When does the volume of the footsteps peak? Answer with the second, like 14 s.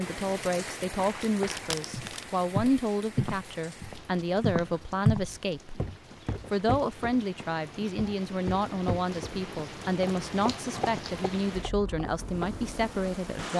5 s.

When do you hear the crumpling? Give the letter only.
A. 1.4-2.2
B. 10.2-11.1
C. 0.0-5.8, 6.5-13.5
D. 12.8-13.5
A.